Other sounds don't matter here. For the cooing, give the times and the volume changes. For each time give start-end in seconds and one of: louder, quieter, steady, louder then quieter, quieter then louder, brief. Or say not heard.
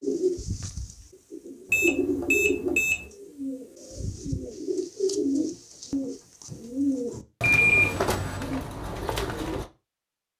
0.0-9.7 steady.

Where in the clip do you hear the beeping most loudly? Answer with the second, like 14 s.
8 s.